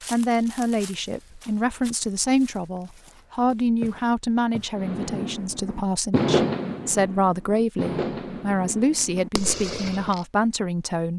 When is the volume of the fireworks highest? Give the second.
6 s.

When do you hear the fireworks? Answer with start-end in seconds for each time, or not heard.
4.8-10.2.